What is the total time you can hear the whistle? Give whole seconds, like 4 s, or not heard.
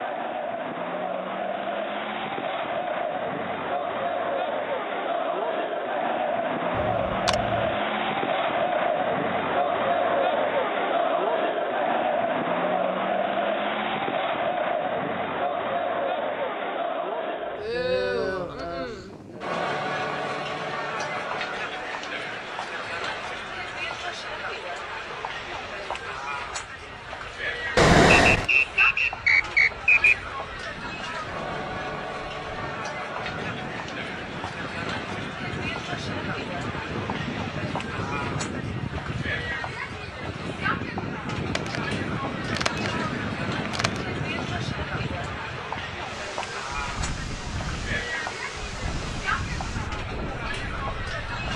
2 s.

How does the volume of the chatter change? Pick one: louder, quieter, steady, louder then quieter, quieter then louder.
quieter.